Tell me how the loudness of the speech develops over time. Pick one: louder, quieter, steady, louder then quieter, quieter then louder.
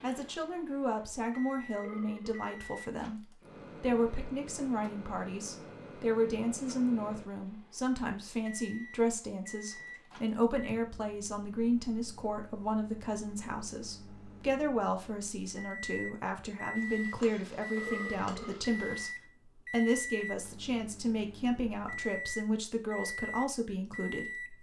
steady.